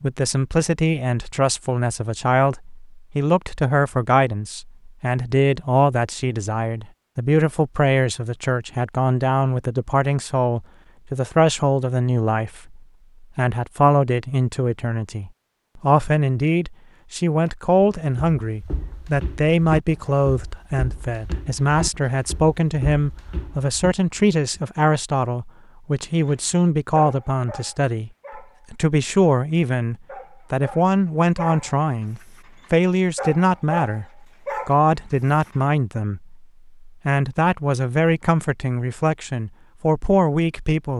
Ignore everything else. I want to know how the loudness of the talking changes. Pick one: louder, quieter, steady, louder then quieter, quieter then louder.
steady.